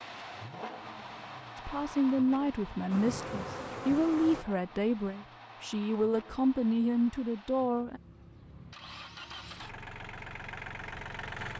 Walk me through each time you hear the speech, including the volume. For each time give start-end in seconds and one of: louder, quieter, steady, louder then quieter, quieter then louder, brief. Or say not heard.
1.6-8.0 steady.